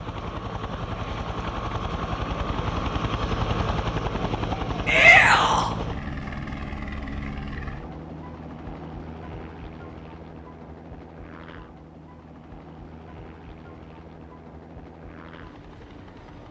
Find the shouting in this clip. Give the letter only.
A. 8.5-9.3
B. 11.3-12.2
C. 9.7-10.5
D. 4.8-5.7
D.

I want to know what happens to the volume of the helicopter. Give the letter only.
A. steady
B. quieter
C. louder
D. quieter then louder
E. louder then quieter
B.